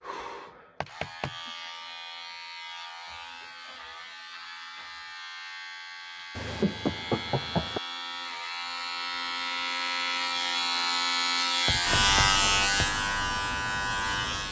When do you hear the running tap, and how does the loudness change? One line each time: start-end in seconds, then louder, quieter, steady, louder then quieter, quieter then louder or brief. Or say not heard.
not heard.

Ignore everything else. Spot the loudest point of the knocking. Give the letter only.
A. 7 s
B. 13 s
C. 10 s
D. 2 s
A.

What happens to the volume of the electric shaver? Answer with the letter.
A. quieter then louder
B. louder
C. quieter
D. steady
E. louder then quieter
B.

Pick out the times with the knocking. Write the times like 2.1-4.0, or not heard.
0.8-1.4, 6.3-7.8, 11.7-12.8.